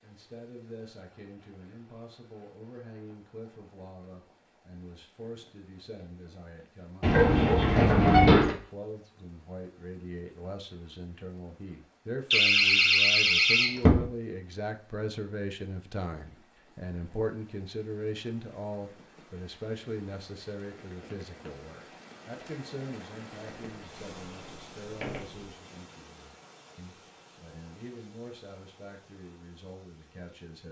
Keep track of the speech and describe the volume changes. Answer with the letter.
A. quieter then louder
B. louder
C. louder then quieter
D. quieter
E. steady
C.